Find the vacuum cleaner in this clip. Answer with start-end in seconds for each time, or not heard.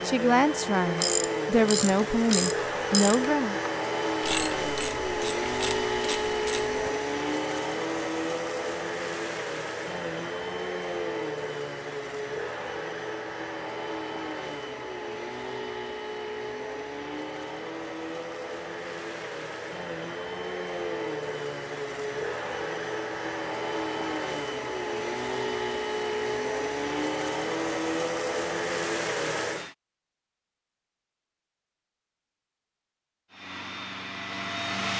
0.0-29.8, 33.3-34.9.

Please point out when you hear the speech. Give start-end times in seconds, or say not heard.
0.0-3.6.